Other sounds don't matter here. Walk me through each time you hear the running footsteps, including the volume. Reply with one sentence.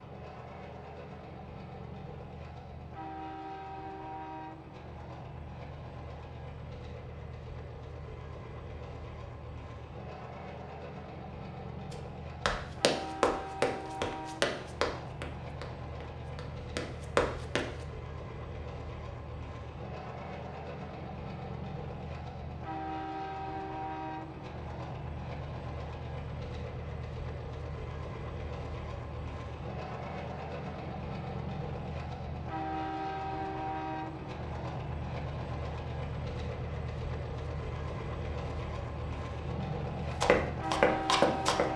You can hear the running footsteps from 11.9 to 17.7 s, getting quieter then louder; and briefly from 40.2 to 41.6 s.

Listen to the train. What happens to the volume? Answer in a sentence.
The volume of the train goes up.